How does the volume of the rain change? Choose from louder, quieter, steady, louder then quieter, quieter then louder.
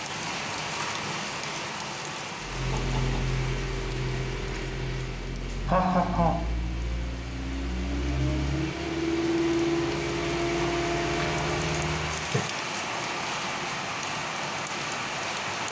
quieter then louder.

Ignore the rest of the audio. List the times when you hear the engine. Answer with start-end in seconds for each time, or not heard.
2.4-12.2.